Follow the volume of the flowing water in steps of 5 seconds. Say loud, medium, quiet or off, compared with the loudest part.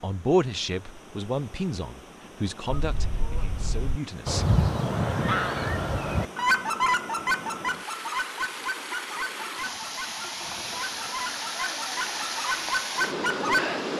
quiet, medium, loud.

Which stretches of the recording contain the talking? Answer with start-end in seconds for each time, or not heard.
0.0-4.5.